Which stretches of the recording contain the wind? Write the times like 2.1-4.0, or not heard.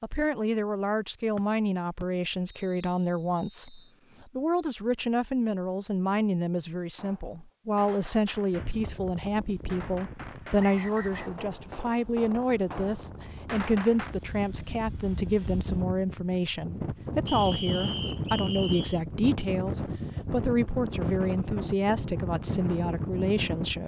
8.5-23.8.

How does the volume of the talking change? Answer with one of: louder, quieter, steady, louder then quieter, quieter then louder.
steady.